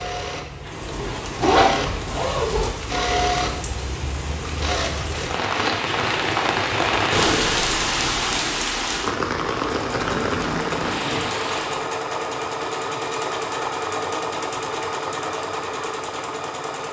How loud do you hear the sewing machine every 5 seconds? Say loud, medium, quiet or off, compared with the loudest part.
loud, medium, loud, loud.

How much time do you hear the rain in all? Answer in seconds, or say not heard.
12 s.